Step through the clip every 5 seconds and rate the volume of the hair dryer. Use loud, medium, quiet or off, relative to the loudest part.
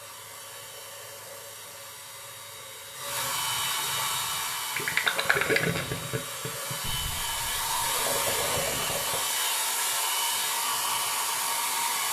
medium, loud, loud.